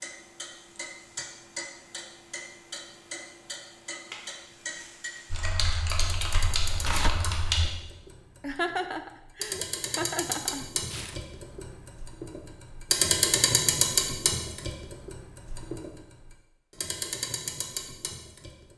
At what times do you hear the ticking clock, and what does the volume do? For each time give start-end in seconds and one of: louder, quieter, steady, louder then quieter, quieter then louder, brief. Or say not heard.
0.0-18.7 louder then quieter.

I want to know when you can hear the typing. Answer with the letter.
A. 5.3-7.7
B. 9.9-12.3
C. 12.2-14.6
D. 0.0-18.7
A.